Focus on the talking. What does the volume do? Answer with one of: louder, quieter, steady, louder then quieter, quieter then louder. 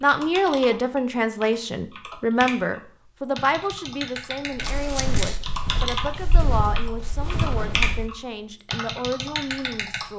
quieter.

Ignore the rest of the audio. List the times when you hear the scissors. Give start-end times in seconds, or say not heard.
4.6-5.4.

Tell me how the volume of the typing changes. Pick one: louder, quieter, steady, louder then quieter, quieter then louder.
louder.